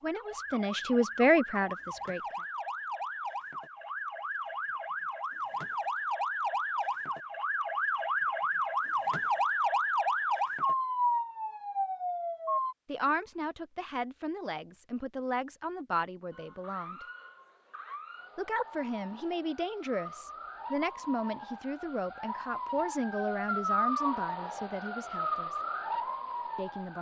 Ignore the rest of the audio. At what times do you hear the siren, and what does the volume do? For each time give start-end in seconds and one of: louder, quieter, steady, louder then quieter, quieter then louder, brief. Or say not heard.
0.0-12.8 louder
16.3-26.9 louder.